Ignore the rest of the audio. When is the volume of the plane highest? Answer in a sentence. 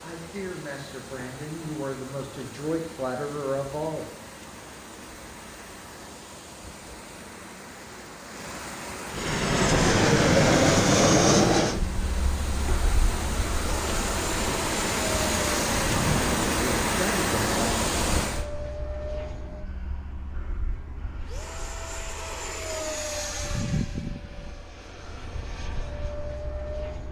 The loudest moment of the plane is at 11 seconds.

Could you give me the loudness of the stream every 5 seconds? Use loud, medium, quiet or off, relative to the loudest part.
quiet, quiet, medium, loud, off, off.